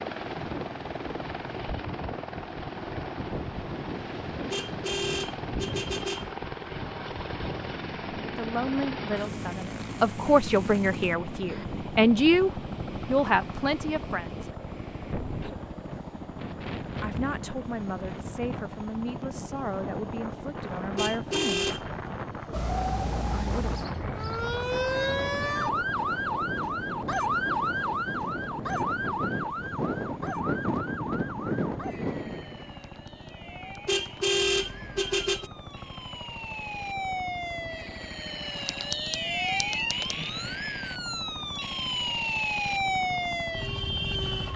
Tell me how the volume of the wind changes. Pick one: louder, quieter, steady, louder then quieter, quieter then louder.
louder.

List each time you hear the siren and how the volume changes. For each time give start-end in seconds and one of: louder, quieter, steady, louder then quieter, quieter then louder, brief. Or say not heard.
22.5-44.5 quieter then louder.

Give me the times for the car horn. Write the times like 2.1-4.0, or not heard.
4.5-6.3, 20.9-22.1, 33.9-35.5.